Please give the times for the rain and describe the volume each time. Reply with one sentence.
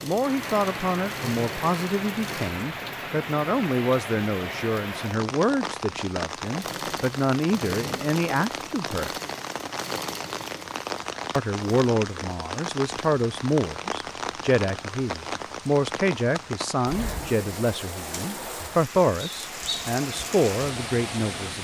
The rain can be heard from 0.1 to 21.5 s, at a steady volume.